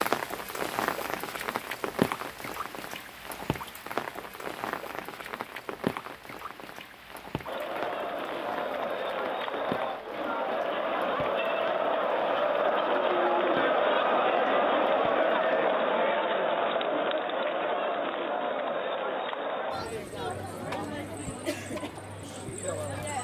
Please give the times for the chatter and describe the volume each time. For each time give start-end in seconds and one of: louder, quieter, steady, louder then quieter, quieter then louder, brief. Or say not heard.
7.5-23.1 louder then quieter.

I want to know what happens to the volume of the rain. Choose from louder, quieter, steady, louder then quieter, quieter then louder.
quieter.